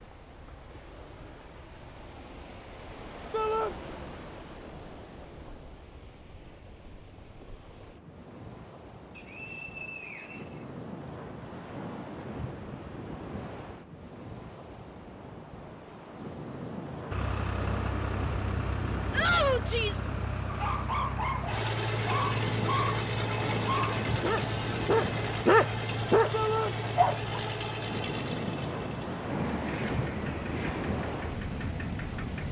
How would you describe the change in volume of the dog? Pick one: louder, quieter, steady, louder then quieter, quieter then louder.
louder.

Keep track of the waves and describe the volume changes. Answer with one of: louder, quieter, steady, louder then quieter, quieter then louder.
louder.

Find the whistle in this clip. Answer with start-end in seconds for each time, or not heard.
9.2-11.1.